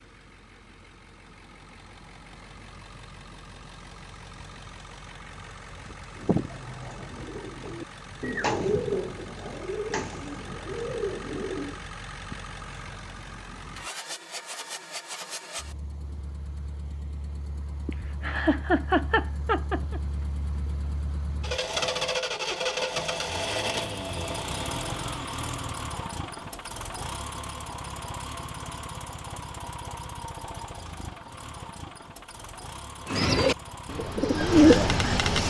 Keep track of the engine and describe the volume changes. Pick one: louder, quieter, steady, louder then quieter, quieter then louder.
louder then quieter.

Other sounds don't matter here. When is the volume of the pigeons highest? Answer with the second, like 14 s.
35 s.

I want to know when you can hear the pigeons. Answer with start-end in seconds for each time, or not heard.
6.2-11.8, 33.0-35.4.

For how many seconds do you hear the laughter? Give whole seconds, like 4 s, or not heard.
2 s.